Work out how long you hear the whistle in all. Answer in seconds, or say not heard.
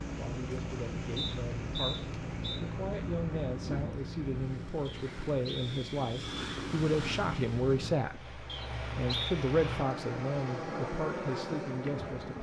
4 s.